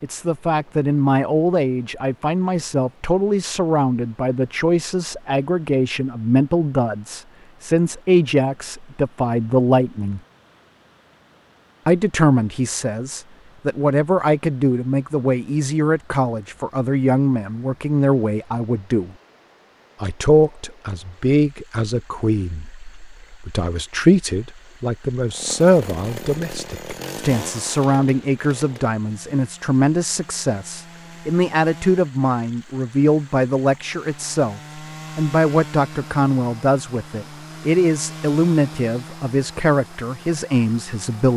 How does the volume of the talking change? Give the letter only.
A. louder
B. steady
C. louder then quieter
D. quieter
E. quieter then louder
B.